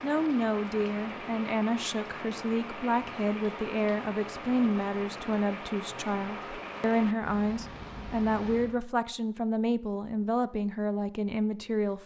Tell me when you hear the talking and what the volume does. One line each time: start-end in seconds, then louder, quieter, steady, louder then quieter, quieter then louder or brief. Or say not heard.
0.0-12.0 steady.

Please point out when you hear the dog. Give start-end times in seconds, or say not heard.
not heard.